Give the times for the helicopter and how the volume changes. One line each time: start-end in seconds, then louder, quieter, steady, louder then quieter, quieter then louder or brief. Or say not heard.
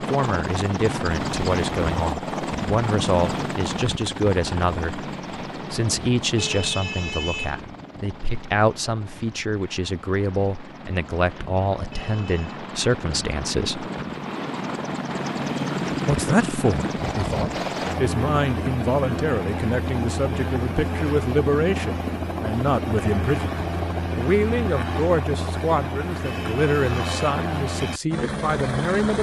0.0-29.1 quieter then louder.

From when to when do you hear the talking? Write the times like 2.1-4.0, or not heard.
0.0-13.9, 16.1-29.1.